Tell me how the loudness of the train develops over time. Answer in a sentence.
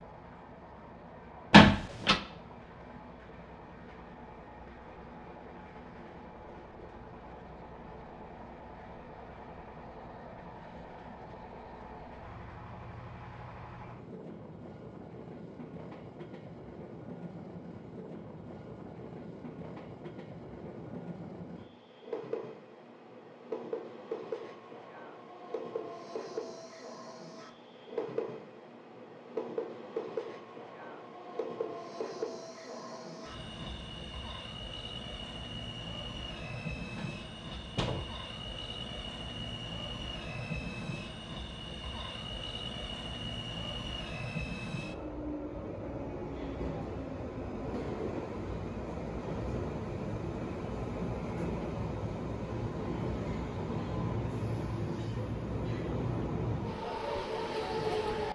The loudness of the train goes up.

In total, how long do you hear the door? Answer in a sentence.
You can hear the door for 2 seconds altogether.